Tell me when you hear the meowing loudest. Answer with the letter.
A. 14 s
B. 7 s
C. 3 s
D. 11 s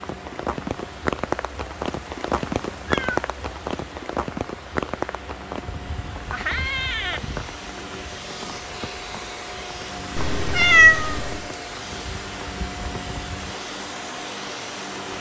D.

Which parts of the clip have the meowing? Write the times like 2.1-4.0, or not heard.
2.8-3.2, 6.3-7.2, 10.2-11.4.